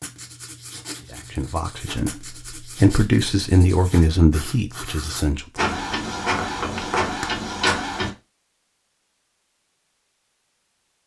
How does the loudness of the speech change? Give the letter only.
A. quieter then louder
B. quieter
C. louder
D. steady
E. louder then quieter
E.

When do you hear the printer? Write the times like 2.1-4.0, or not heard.
5.5-8.1.